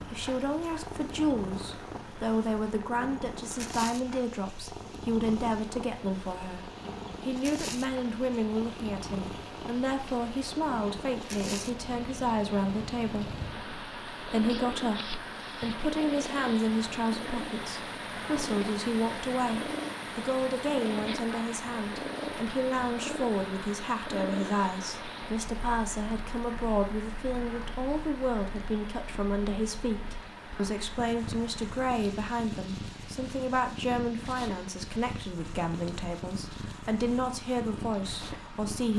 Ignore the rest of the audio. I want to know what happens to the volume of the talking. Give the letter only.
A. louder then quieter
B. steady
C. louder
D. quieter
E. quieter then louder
B.